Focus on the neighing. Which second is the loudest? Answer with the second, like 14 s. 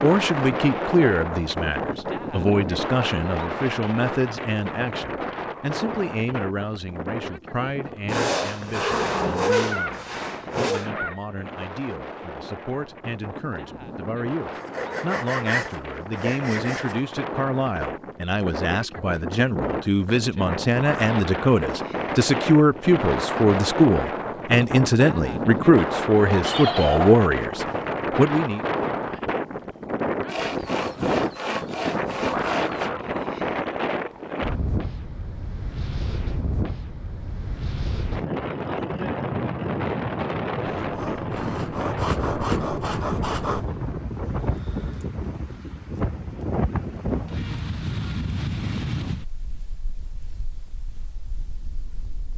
27 s.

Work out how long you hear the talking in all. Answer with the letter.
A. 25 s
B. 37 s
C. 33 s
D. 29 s
D.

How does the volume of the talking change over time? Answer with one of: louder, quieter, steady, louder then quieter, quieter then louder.
quieter then louder.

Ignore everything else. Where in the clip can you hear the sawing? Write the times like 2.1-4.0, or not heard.
8.1-10.9, 14.6-17.0, 30.2-32.9, 40.6-43.6.